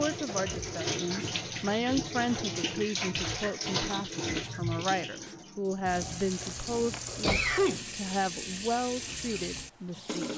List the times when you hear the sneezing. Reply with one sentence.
You can hear the sneezing from 1.1 to 1.8 s and from 6.3 to 7.9 s.